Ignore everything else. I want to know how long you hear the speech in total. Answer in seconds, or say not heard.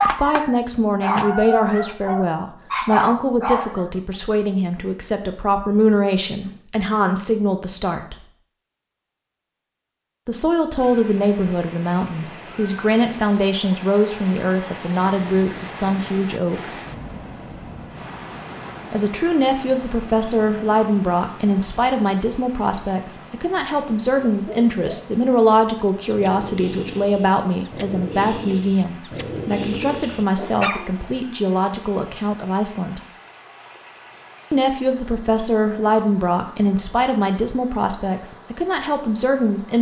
34 s.